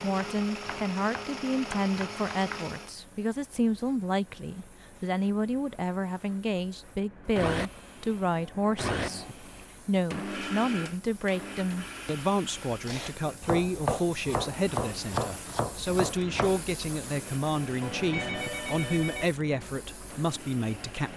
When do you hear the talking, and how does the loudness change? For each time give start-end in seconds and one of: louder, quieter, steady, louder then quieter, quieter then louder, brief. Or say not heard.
0.0-21.1 steady.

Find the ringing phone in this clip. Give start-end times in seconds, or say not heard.
17.8-19.2.